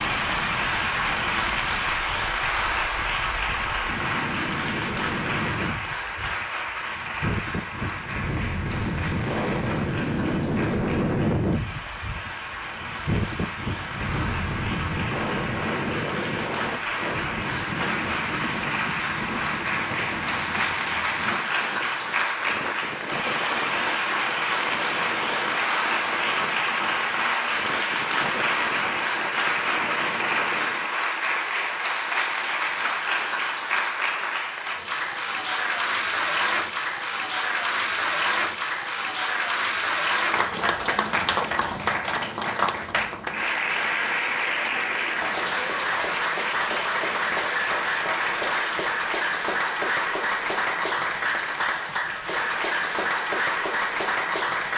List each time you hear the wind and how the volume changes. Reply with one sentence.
You can hear the wind from 0.0 to 30.9 s, getting louder then quieter.